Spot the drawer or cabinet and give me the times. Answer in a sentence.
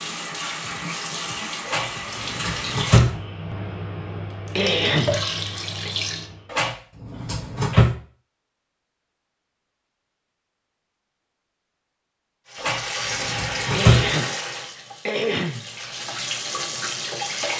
The drawer or cabinet can be heard from 1.6 to 3.1 s, from 6.5 to 8.0 s and from 12.6 to 14.1 s.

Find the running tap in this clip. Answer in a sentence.
The running tap can be heard from 0.0 to 6.5 s and from 12.4 to 17.5 s.